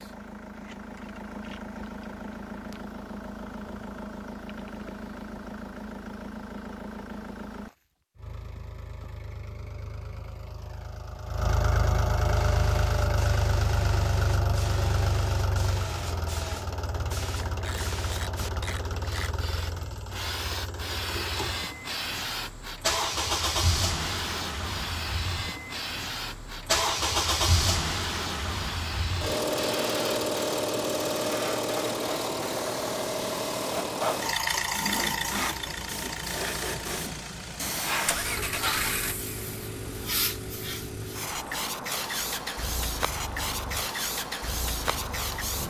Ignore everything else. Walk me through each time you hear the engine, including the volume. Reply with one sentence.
The engine can be heard from 0.0 to 45.6 s, getting louder then quieter.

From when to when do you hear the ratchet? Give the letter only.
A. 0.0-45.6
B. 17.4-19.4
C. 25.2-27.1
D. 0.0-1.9
B.